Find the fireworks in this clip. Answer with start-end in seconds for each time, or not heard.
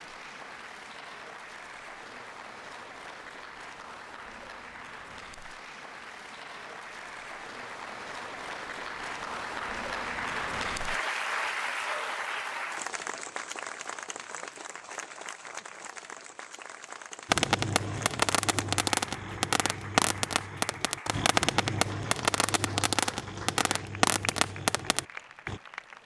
17.2-25.6.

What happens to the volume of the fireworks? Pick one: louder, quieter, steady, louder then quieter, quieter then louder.
steady.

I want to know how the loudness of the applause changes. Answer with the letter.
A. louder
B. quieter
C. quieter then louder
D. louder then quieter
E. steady
D.